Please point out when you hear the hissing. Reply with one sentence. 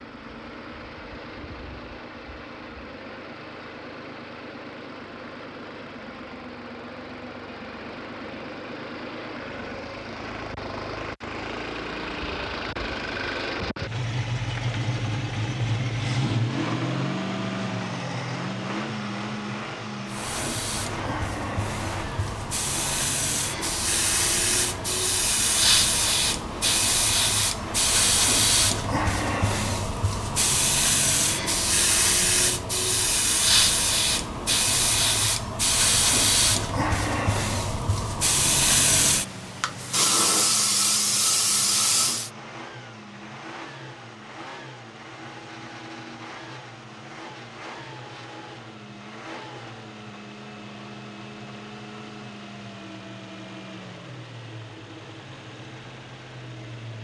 The hissing can be heard from 20.1 to 42.3 s.